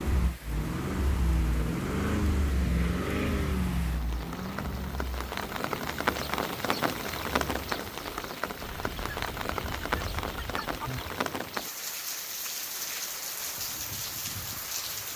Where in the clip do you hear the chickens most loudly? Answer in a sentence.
The loudest moment of the chickens is at 11 seconds.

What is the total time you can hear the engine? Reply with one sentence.
The engine can be heard for 8 seconds in total.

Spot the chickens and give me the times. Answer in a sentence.
The chickens can be heard from 8.6 to 11.2 s.